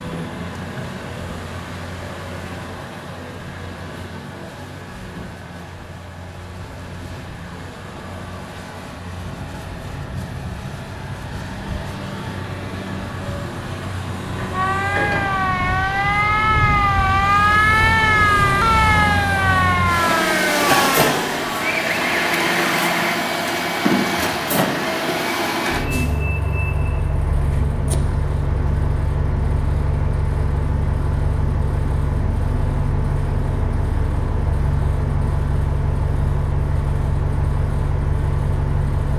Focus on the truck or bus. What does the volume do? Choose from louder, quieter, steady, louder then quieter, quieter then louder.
louder.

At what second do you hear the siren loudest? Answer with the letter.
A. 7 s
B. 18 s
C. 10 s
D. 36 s
B.